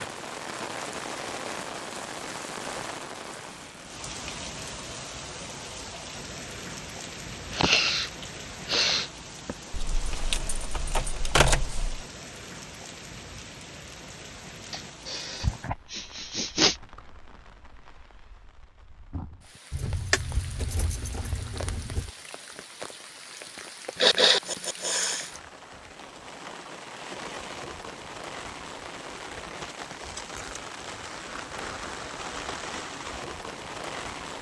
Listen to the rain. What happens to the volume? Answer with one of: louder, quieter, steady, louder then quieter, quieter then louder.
quieter then louder.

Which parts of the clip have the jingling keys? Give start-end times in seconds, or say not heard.
9.7-12.1, 19.7-22.1.